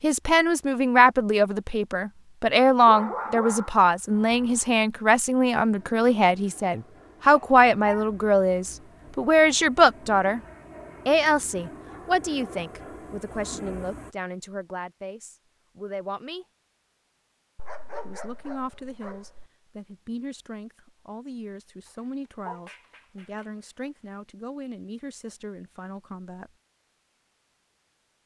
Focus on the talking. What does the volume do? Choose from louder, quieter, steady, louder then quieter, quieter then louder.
quieter.